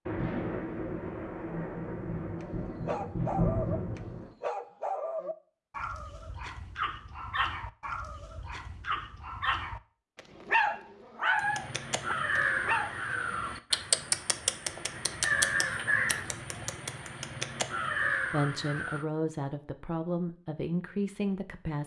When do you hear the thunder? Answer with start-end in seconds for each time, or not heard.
0.1-4.3.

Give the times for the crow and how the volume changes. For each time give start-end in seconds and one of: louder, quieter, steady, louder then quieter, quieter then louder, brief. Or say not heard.
11.3-19.1 steady.